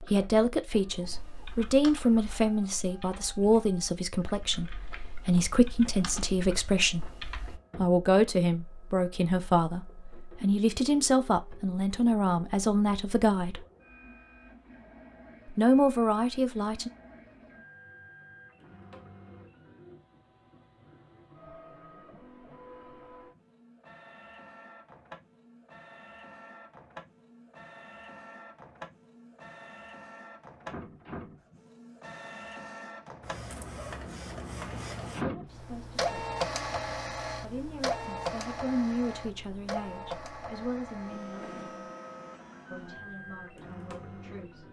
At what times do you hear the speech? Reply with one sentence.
You can hear the speech from 0.0 to 7.0 s, from 7.8 to 13.6 s, from 15.6 to 16.9 s, from 35.2 to 36.1 s, from 37.4 to 41.9 s and from 42.7 to 44.6 s.